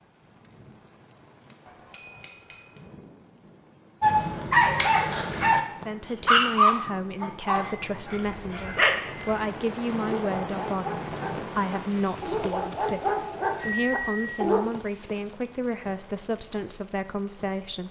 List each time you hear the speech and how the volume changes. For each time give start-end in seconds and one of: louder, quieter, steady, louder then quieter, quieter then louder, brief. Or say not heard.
5.7-17.8 steady.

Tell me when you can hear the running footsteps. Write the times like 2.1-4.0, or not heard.
not heard.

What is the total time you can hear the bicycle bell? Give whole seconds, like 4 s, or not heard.
4 s.